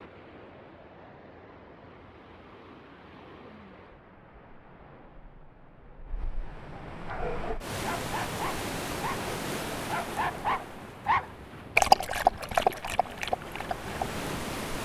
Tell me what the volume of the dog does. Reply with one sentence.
The loudness of the dog goes up, then down.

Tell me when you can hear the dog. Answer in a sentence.
The dog can be heard from 7.0 to 13.9 s.